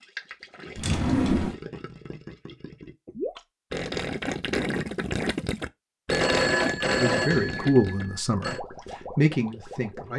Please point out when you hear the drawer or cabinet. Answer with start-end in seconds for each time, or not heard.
0.8-1.6, 7.1-7.7.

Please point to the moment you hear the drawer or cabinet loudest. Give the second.
1 s.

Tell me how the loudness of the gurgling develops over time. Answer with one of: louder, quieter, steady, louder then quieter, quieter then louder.
louder then quieter.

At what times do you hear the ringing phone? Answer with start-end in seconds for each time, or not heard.
6.1-8.6.